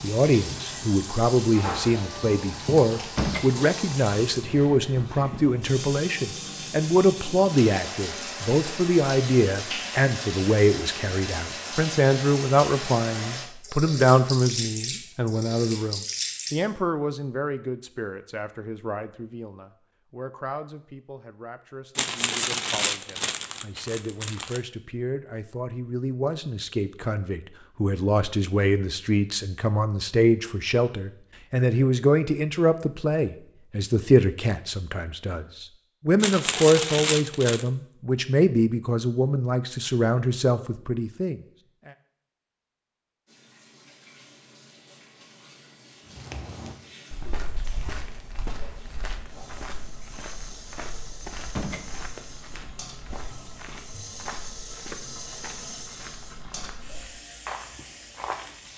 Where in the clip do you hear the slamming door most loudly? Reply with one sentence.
The volume of the slamming door peaks at 3 seconds.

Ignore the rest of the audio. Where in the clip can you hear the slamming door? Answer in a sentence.
The slamming door can be heard from 3.0 to 3.5 s and from 51.4 to 51.9 s.